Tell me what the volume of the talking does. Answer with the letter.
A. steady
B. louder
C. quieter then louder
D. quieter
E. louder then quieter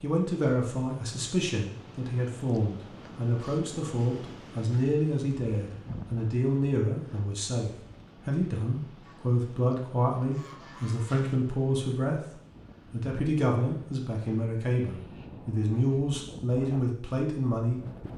A.